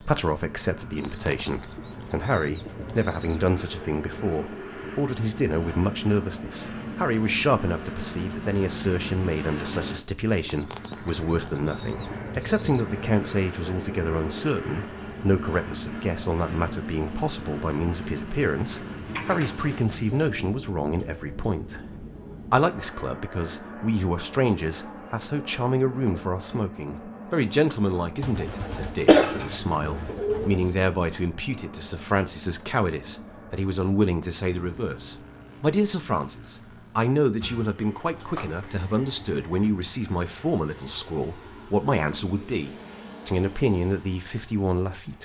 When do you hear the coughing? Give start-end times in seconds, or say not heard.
29.1-30.1.